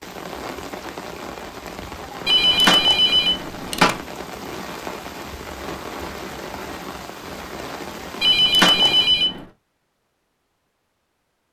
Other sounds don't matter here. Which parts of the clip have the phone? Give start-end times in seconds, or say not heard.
2.2-4.0, 8.2-9.4.